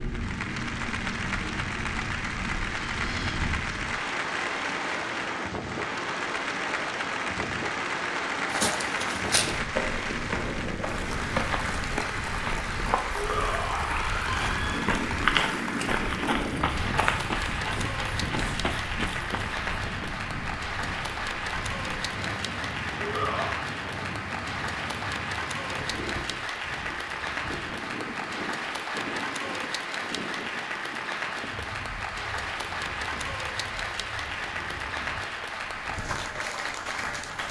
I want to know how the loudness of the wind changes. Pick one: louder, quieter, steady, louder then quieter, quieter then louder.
quieter.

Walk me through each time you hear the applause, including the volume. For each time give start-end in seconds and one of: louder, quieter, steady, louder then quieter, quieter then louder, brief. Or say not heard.
0.0-37.4 steady.